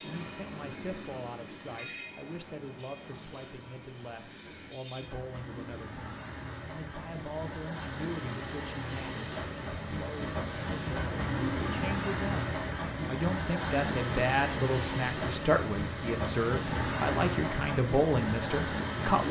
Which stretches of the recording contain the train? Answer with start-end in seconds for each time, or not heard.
0.0-19.2.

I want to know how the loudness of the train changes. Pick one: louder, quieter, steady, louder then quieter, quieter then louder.
louder.